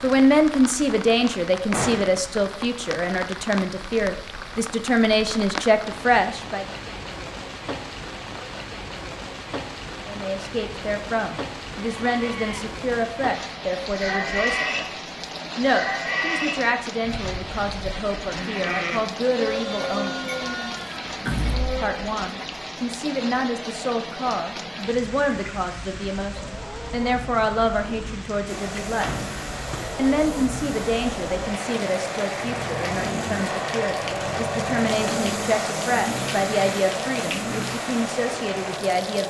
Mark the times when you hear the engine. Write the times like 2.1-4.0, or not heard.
28.4-39.2.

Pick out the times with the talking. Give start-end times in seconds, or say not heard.
0.0-6.7, 10.1-14.8, 15.6-20.4, 21.8-29.2, 29.9-39.2.